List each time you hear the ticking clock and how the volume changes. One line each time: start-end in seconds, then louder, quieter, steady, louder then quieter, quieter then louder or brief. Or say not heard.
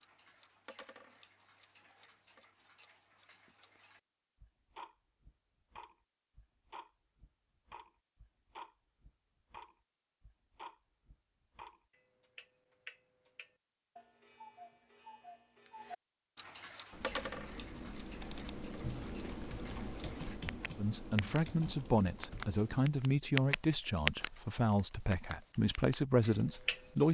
0.0-21.4 louder
22.2-24.3 brief
25.1-27.0 brief.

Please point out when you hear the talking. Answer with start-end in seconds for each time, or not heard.
20.8-27.0.